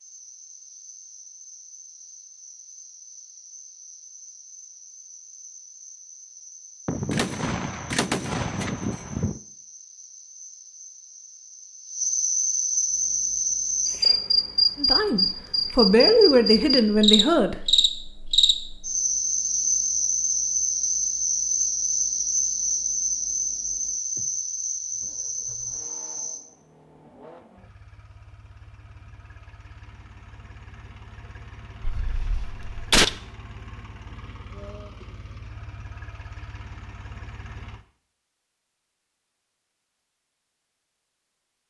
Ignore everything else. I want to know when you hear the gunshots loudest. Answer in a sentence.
The loudest moment of the gunshots is at 33 seconds.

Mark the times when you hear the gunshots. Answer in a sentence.
The gunshots can be heard from 6.8 to 9.4 s and from 31.8 to 33.1 s.